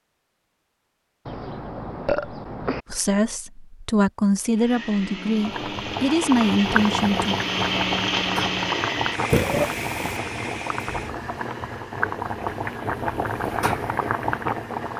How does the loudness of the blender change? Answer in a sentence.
The loudness of the blender goes up, then down.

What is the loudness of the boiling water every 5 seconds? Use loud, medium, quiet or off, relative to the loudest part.
off, loud, loud.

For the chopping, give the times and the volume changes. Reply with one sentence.
You can't hear the chopping here.